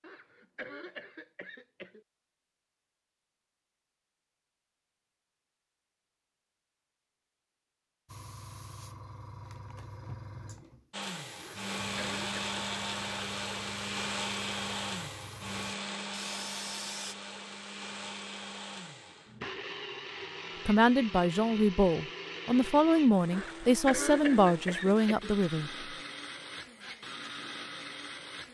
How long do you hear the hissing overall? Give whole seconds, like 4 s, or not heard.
9 s.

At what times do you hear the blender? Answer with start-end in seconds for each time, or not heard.
10.9-28.5.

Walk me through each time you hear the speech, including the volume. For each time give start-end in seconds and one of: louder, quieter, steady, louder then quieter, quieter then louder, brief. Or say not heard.
20.6-25.9 steady.